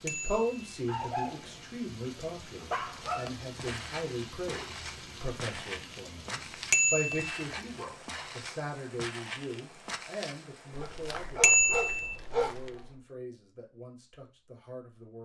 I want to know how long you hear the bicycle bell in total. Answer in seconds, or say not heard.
2 s.